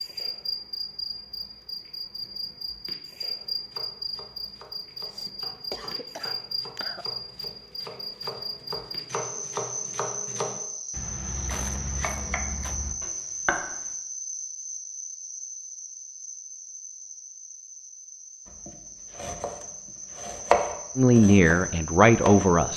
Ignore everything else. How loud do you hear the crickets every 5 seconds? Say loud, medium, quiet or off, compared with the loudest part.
loud, loud, loud, medium, loud.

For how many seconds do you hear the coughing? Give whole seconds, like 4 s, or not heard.
3 s.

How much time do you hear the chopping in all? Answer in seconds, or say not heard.
14 s.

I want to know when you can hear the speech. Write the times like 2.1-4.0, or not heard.
20.9-22.7.